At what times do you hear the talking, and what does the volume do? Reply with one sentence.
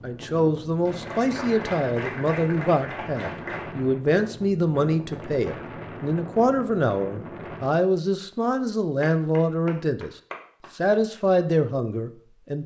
The talking can be heard from 0.0 to 10.1 s, at a steady volume; and briefly from 10.8 to 12.6 s.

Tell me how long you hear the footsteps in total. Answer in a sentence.
You can't hear the footsteps here.